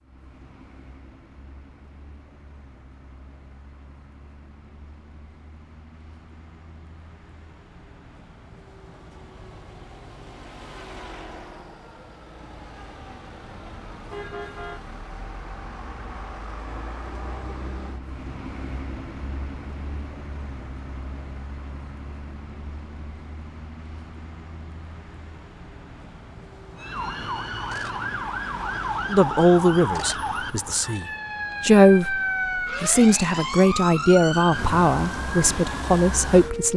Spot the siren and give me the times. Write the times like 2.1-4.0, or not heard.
26.8-36.7.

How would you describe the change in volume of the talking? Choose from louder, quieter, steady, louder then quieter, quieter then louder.
steady.